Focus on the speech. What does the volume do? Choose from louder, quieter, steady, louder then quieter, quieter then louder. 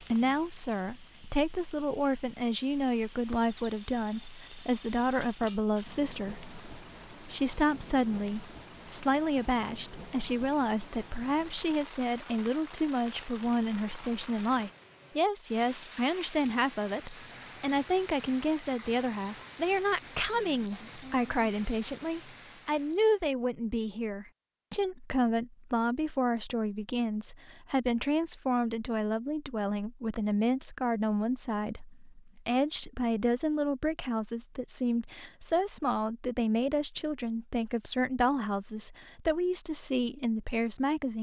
steady.